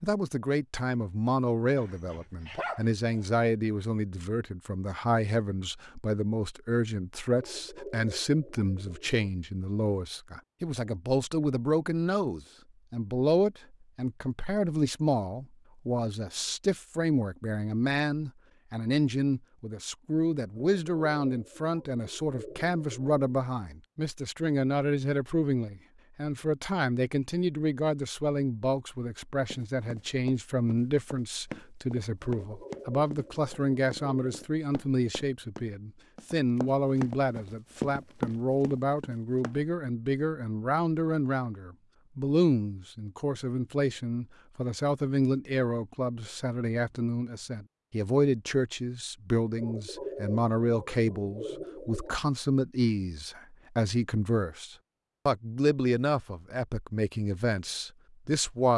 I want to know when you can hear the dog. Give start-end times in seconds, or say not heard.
1.8-3.3.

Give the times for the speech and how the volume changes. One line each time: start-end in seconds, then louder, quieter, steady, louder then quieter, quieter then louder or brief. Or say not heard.
0.0-58.7 steady.